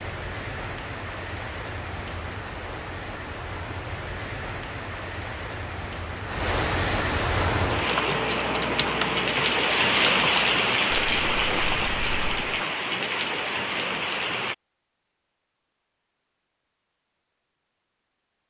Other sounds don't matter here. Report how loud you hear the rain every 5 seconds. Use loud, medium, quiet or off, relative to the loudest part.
medium, loud, loud, off.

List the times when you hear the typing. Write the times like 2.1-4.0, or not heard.
7.3-12.6.